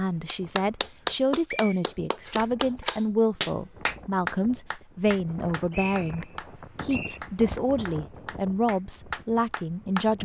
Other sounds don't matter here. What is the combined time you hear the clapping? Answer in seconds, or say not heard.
10 s.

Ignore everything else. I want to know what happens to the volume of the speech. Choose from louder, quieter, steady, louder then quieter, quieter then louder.
steady.